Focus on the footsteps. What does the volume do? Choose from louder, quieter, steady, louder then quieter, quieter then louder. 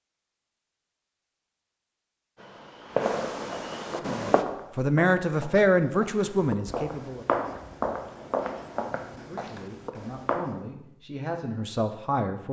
louder then quieter.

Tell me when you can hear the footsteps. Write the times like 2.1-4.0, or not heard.
3.9-10.6.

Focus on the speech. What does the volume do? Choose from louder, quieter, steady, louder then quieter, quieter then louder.
quieter then louder.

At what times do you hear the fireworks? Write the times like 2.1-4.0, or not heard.
2.4-4.5.